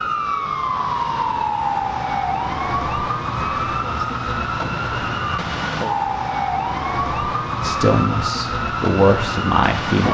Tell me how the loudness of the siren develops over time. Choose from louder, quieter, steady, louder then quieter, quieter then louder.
steady.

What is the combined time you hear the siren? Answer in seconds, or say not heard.
10 s.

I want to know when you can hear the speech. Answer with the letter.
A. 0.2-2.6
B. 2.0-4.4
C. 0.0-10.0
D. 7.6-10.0
D.